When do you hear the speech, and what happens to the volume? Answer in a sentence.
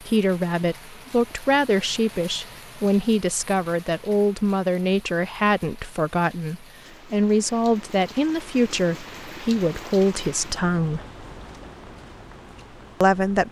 The speech can be heard from 0.0 to 11.1 s, at a steady volume; and briefly from 13.0 to 13.4 s.